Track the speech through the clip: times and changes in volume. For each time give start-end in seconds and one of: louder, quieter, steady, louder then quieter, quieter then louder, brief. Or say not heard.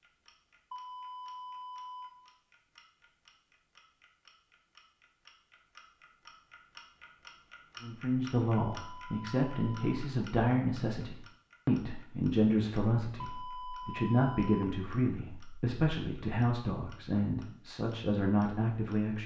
7.8-19.2 steady.